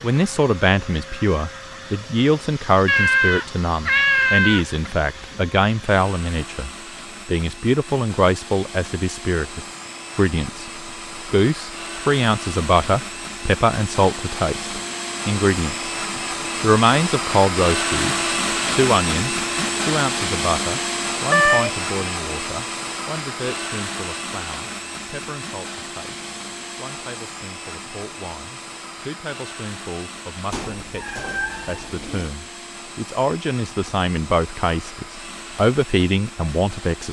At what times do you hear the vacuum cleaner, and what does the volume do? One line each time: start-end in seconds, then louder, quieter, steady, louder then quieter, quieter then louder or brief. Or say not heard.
0.0-37.0 louder then quieter.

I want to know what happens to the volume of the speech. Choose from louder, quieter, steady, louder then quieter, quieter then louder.
quieter then louder.